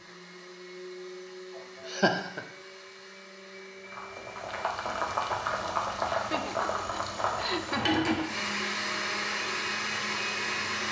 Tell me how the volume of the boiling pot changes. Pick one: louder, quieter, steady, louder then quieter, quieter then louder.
quieter.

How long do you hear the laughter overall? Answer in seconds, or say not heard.
3 s.